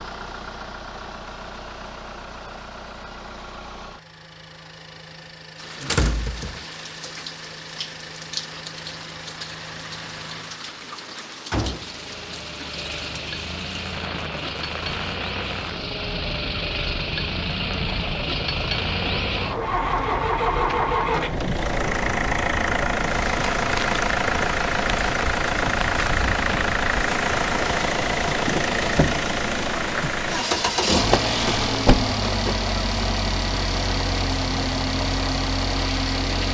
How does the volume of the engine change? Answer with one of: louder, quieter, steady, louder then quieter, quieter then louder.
louder.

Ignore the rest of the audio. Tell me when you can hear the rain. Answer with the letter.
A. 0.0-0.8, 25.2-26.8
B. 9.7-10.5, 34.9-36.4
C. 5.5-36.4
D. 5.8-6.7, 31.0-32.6
C.